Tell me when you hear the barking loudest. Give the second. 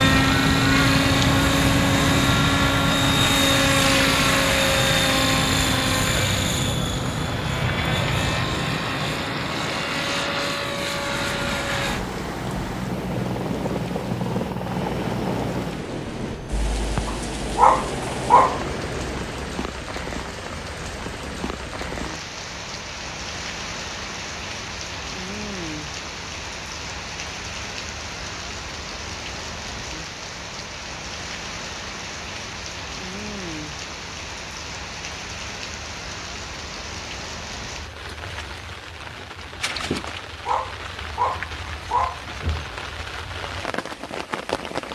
18 s.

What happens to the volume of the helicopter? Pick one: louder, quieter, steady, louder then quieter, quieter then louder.
quieter.